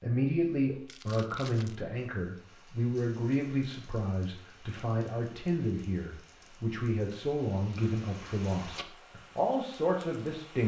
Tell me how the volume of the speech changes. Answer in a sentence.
The volume of the speech stays about the same.